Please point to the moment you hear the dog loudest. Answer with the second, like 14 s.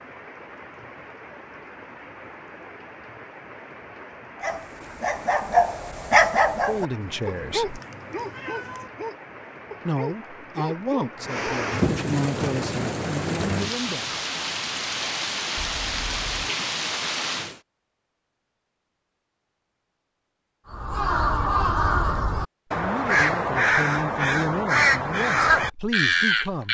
6 s.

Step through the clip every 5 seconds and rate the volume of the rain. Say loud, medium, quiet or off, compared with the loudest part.
quiet, quiet, loud, loud, off, off.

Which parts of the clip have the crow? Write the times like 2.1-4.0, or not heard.
20.7-26.7.